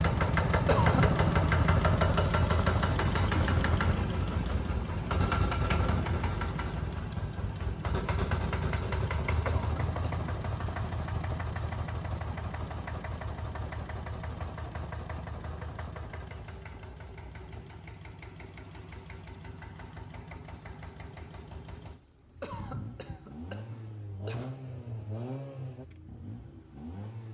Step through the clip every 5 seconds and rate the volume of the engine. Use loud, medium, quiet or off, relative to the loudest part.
loud, medium, medium, quiet, quiet, quiet.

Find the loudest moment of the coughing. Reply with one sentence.
The loudest moment of the coughing is at 1 second.